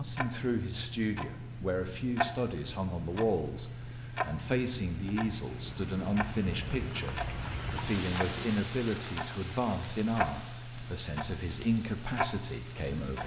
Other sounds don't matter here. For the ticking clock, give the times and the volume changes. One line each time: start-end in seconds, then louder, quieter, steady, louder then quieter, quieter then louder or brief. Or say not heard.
0.0-13.2 steady.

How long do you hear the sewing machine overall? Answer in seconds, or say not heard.
not heard.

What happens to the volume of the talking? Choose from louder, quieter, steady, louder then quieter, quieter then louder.
steady.